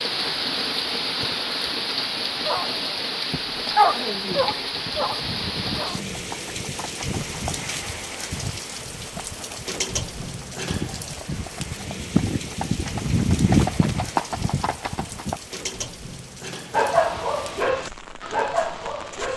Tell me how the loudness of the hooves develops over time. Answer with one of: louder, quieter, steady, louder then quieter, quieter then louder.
louder.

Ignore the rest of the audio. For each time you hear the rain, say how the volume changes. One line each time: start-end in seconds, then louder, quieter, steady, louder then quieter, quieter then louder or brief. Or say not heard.
0.0-19.3 quieter.